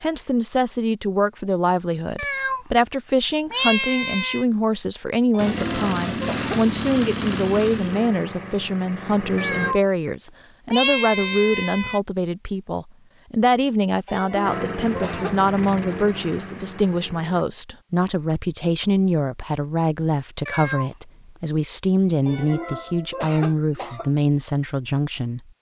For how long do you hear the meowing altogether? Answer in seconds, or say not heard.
4 s.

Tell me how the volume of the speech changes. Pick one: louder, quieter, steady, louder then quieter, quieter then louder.
steady.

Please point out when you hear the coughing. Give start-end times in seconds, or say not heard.
5.3-6.7, 14.1-15.4, 22.2-24.1.